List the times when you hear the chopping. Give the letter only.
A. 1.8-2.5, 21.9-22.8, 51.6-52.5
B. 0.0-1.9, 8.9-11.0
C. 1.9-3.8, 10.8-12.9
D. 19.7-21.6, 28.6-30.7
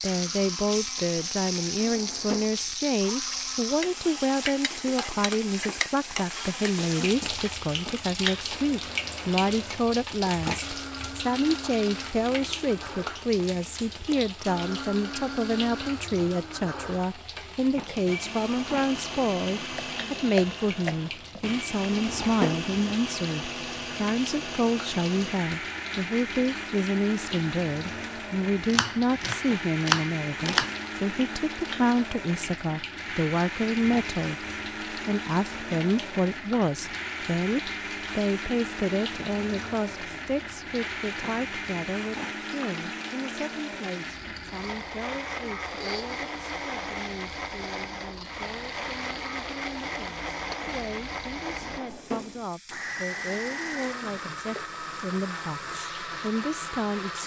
D.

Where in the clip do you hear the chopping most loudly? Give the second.
30 s.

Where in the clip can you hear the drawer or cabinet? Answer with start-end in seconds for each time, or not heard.
1.8-2.5, 21.9-22.8, 51.6-52.5.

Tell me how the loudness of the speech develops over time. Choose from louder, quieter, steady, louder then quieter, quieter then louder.
quieter.